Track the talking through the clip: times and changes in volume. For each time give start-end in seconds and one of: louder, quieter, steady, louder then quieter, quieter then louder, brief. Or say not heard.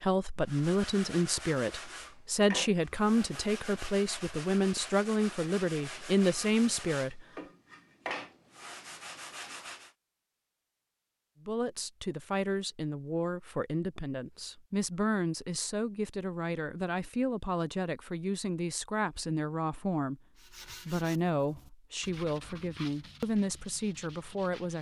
0.0-7.2 steady
11.4-24.7 steady.